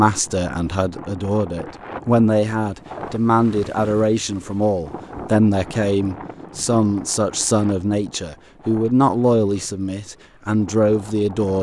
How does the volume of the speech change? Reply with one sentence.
The loudness of the speech stays about the same.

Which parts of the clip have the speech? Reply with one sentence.
You can hear the speech from 0.0 to 11.5 s.